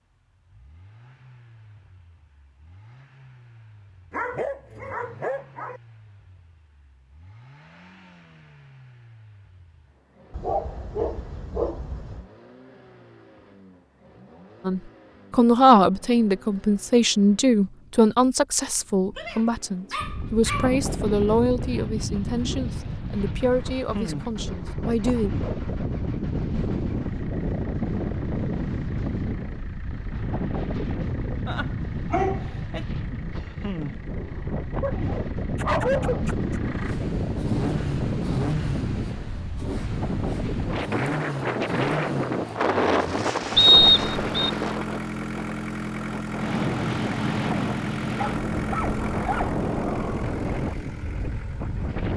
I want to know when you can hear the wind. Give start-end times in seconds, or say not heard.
19.9-52.1.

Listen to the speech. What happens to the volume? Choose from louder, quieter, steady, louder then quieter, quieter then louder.
quieter.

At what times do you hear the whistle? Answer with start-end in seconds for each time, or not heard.
43.5-44.5.